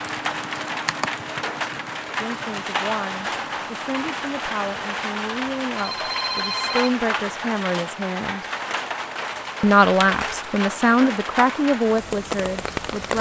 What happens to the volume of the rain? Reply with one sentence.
The loudness of the rain stays about the same.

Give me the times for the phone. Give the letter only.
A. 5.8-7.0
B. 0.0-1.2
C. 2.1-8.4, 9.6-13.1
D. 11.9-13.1
A.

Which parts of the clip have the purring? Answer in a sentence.
The purring can't be heard in this clip.